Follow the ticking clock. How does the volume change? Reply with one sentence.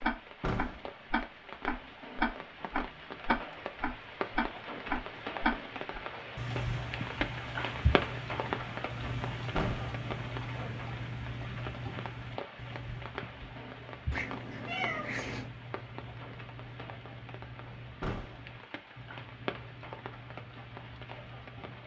The loudness of the ticking clock goes down.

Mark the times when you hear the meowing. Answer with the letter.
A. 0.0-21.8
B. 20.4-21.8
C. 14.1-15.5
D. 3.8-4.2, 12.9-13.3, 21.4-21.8
C.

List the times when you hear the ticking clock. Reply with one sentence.
The ticking clock can be heard from 0.0 to 21.8 s.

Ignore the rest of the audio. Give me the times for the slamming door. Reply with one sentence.
You can hear the slamming door from 0.4 to 0.9 s, from 9.6 to 10.0 s and from 18.0 to 18.4 s.